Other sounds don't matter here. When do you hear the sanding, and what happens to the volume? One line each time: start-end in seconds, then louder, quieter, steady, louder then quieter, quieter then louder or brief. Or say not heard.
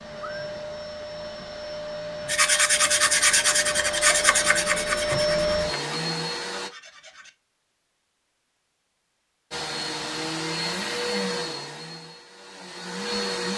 2.2-7.3 quieter.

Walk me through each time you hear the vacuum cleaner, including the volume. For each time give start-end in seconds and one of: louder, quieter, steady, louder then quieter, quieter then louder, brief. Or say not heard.
0.0-6.7 louder
9.5-13.5 quieter then louder.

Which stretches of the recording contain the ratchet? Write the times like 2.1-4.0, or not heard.
not heard.